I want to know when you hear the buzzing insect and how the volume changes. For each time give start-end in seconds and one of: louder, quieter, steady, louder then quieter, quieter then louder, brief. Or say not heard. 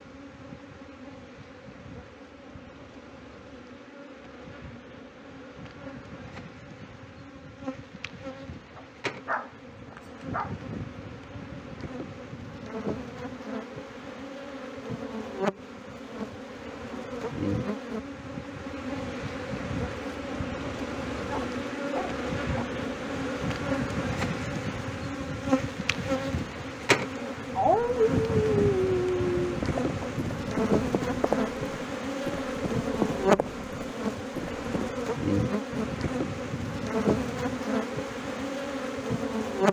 0.0-39.6 louder.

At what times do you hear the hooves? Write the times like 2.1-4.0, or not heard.
29.6-35.0.